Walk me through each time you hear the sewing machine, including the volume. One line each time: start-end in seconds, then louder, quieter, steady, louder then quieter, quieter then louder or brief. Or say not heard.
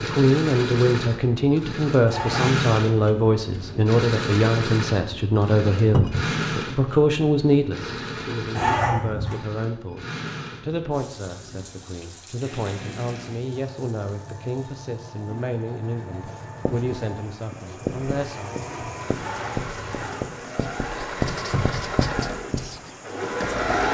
0.0-23.8 quieter then louder.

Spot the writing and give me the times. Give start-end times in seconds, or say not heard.
16.2-23.8.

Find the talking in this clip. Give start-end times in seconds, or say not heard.
0.0-18.6.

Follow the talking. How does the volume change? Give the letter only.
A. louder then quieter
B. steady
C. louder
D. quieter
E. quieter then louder
D.